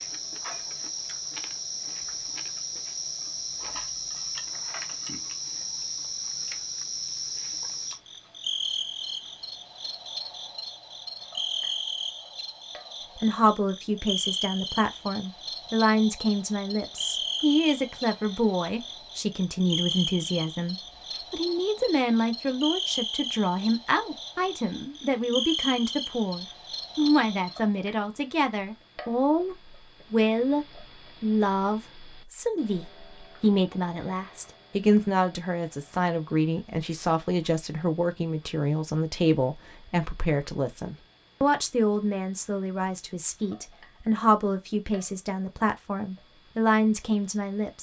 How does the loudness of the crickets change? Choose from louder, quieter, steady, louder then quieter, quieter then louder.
steady.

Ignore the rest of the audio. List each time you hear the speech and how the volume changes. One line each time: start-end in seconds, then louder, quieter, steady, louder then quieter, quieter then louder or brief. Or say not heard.
13.2-47.7 steady.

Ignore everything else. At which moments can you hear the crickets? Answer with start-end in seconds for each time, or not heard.
0.0-27.6.